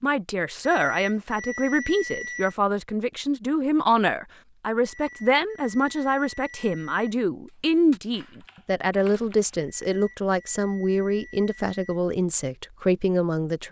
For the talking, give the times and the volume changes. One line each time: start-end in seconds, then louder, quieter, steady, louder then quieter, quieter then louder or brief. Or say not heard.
0.0-13.6 steady.